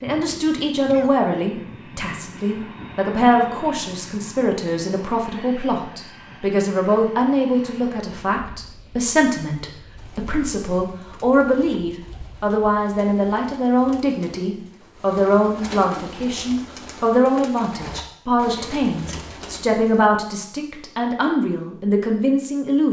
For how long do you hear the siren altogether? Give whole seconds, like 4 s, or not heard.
not heard.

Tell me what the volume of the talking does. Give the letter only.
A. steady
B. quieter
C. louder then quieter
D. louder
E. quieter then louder
A.